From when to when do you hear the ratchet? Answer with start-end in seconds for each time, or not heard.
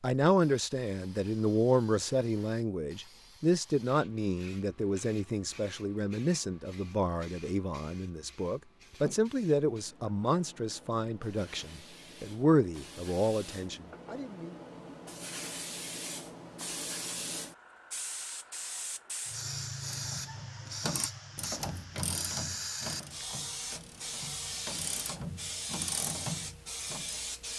19.9-27.2.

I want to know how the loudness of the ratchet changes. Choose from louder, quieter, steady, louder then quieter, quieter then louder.
quieter then louder.